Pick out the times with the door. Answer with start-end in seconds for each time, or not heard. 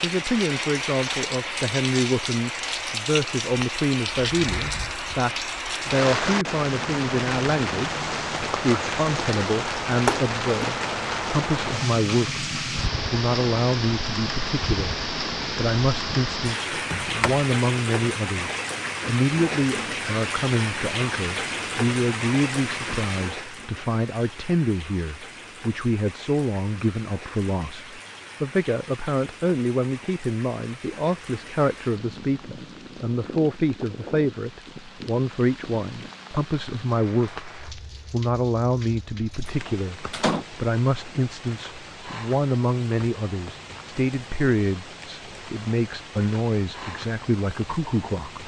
10.1-10.7, 16.7-17.4, 39.5-40.5.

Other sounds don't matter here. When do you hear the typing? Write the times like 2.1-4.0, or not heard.
not heard.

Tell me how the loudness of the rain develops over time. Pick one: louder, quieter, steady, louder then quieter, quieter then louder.
quieter.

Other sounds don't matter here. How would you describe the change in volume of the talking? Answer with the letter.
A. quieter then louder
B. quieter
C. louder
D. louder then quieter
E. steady
E.